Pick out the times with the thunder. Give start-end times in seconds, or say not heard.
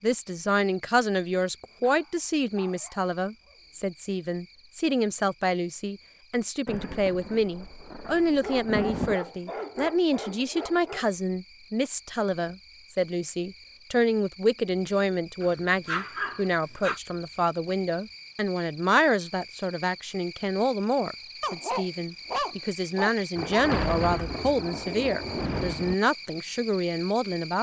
6.7-9.2, 23.4-25.9.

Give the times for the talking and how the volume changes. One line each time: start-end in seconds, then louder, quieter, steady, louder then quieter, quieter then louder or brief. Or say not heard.
0.0-27.5 steady.